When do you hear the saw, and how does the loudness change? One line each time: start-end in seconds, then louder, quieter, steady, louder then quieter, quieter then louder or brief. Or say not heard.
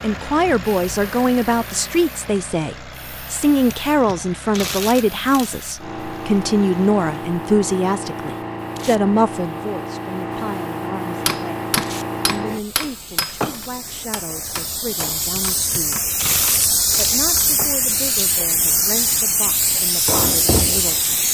not heard.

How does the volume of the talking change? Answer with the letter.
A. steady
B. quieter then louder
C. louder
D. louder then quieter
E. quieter
E.